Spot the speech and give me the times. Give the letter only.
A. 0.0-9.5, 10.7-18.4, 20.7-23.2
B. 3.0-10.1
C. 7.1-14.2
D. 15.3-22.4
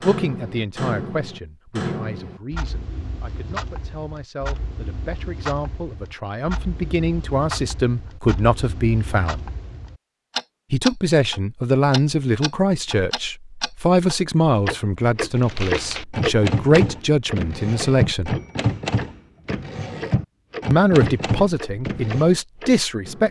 A.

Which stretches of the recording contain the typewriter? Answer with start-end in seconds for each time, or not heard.
15.3-22.4.